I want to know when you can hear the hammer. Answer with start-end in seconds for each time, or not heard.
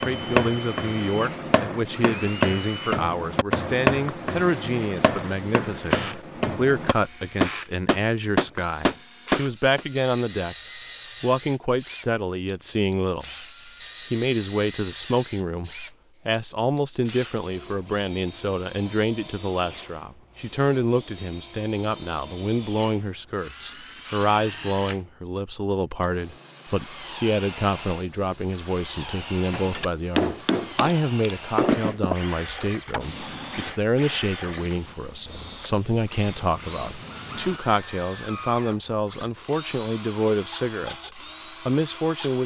0.0-9.8, 29.5-33.0.